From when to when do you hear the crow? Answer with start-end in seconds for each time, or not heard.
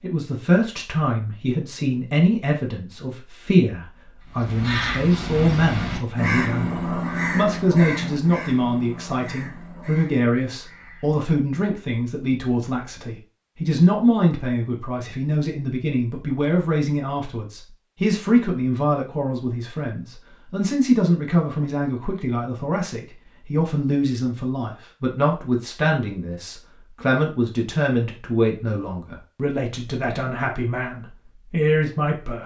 4.3-11.3.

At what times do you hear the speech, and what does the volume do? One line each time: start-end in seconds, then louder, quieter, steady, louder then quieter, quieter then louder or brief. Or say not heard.
0.0-32.4 steady.